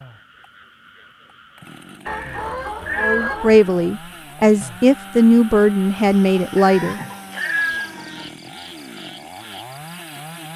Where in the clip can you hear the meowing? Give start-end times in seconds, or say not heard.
2.0-3.7, 6.5-8.3.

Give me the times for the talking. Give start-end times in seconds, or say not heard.
3.0-7.0.